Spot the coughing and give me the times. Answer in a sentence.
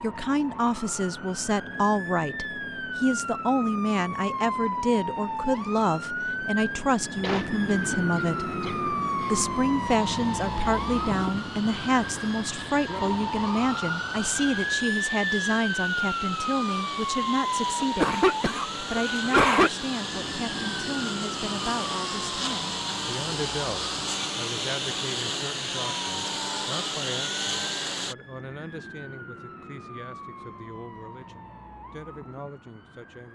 The coughing can be heard from 7.2 to 9.3 s and from 17.8 to 19.7 s.